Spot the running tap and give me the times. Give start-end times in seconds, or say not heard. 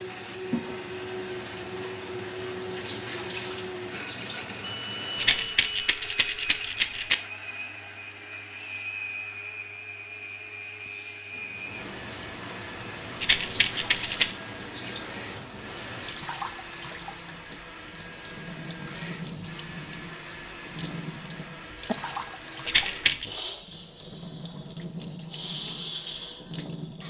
0.0-5.7, 11.3-27.0.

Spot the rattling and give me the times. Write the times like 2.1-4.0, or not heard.
5.2-7.2, 13.2-14.3, 22.6-23.2.